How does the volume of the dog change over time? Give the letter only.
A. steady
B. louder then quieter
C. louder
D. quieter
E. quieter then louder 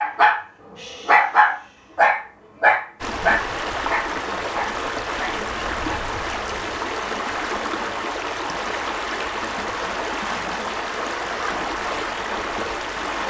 D.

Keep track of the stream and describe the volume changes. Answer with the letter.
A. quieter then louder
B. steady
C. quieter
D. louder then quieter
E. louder
B.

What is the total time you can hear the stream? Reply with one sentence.
You can hear the stream for 10 seconds altogether.